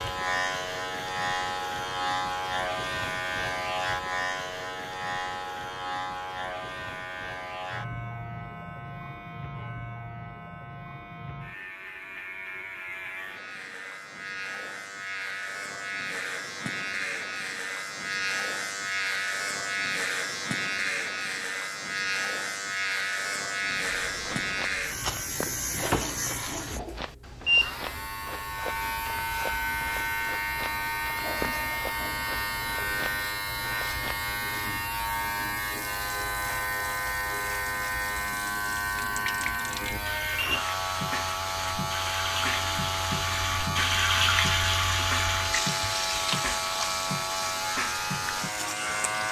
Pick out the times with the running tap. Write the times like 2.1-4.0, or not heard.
35.6-49.2.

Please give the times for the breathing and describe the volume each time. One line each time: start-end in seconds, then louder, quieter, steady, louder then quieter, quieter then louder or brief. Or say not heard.
not heard.